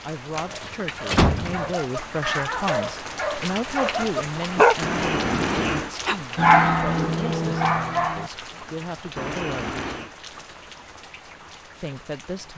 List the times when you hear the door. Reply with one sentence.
You can hear the door from 0.3 to 1.8 s, from 4.8 to 5.9 s and from 9.2 to 10.1 s.